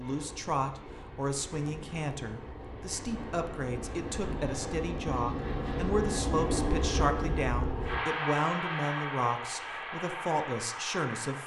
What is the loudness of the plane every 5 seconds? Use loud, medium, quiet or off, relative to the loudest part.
medium, loud, medium.